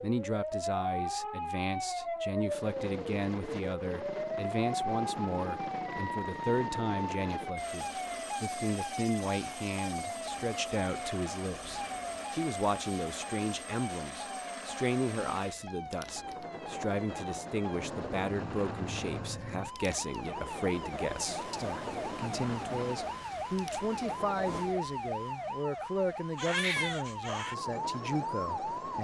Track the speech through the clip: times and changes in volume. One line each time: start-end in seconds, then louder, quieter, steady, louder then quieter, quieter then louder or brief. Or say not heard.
0.0-28.9 steady.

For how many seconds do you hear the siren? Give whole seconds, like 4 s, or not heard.
29 s.